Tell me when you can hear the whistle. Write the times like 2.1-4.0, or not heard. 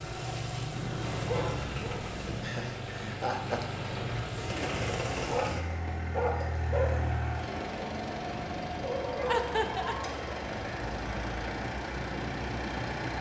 not heard.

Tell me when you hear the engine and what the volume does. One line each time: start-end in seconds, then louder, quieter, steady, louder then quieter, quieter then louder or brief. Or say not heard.
0.0-13.1 steady.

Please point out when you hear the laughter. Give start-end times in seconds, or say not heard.
2.4-3.7, 9.2-9.9.